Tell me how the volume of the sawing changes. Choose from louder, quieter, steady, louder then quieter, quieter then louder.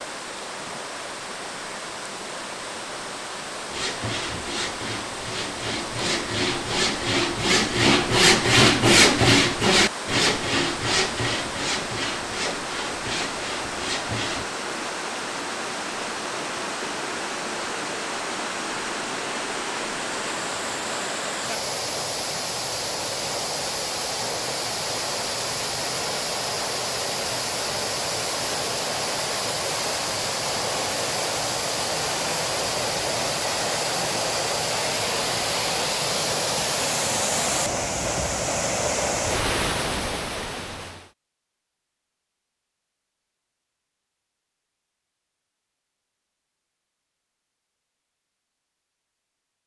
louder then quieter.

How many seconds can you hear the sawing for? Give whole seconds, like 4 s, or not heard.
11 s.